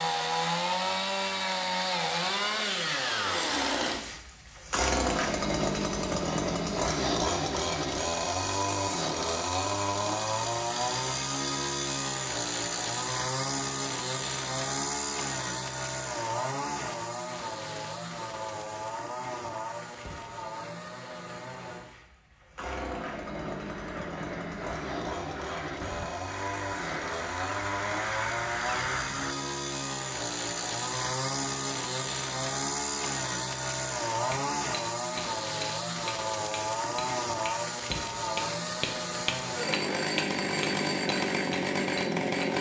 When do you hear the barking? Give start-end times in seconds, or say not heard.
not heard.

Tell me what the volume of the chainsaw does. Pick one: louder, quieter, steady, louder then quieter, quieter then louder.
quieter then louder.